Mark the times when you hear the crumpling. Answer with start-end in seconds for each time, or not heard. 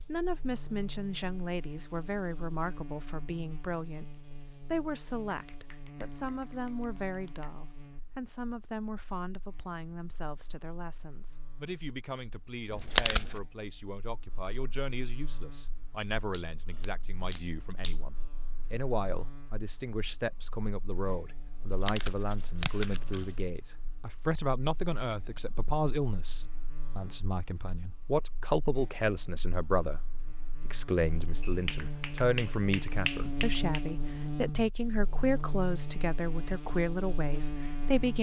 12.7-13.4, 21.6-23.4.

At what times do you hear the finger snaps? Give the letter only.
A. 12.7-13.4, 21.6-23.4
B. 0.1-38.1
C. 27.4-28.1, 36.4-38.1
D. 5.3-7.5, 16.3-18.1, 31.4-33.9
D.